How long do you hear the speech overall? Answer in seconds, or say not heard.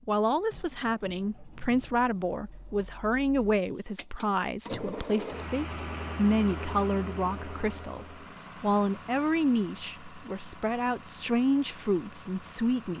13 s.